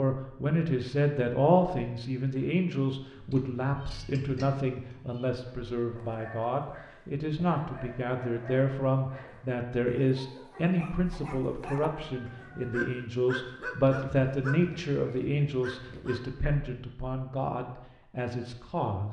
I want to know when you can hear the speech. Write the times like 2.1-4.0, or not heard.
0.0-19.0.